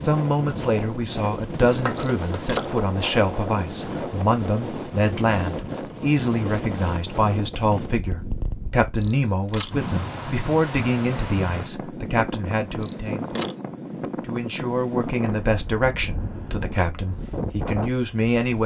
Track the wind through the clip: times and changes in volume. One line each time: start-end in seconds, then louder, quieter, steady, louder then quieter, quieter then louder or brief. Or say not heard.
0.0-18.6 steady.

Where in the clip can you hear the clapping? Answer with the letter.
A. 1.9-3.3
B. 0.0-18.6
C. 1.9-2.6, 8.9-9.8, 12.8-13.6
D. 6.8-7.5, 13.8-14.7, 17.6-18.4
A.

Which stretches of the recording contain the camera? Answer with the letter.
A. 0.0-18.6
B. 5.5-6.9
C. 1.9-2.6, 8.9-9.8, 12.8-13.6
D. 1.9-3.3
C.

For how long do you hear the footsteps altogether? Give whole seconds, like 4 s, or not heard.
not heard.